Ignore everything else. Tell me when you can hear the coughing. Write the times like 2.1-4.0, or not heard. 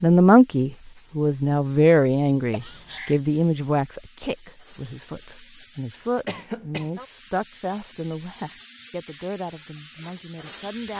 2.5-3.2, 6.2-6.9.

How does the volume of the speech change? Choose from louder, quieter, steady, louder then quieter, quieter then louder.
quieter.